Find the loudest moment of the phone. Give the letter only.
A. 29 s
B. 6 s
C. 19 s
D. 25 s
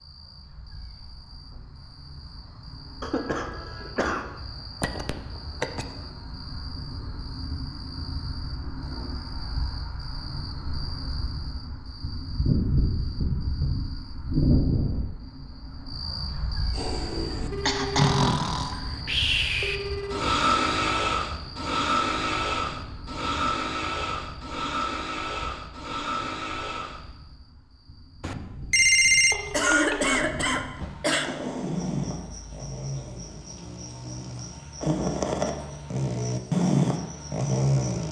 A.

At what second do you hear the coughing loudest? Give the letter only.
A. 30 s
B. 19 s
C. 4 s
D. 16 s
A.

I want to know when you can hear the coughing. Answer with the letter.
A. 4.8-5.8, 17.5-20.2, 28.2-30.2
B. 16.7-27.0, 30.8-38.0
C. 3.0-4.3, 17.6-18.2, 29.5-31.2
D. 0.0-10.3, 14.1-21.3
C.